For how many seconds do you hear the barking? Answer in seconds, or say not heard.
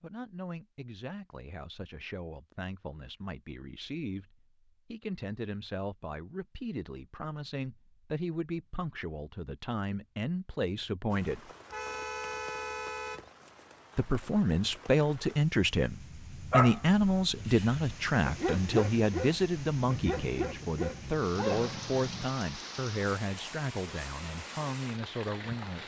6 s.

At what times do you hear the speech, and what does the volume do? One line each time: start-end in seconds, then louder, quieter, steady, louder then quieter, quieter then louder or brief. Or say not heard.
0.0-11.5 louder
13.9-25.8 quieter.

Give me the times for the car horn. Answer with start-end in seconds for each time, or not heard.
11.7-13.3.